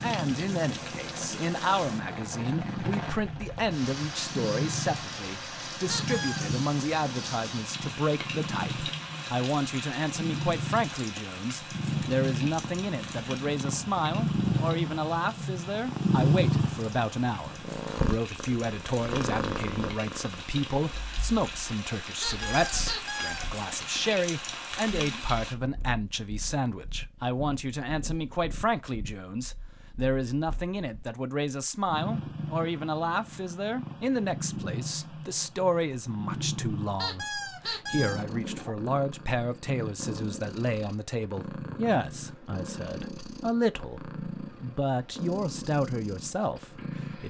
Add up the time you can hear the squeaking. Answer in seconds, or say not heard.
3 s.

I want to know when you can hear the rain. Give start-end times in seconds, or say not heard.
0.0-25.6.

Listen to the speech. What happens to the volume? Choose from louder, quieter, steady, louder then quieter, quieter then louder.
steady.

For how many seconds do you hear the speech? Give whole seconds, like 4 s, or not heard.
47 s.